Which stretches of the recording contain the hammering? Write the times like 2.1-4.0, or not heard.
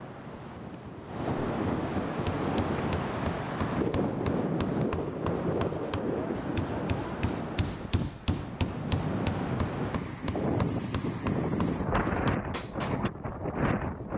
2.1-13.1.